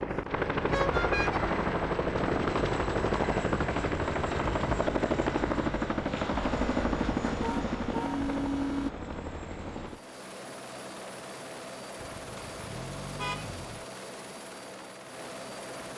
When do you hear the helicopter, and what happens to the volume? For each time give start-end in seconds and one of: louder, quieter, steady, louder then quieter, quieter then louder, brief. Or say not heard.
0.0-15.9 quieter.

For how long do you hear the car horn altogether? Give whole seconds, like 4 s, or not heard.
4 s.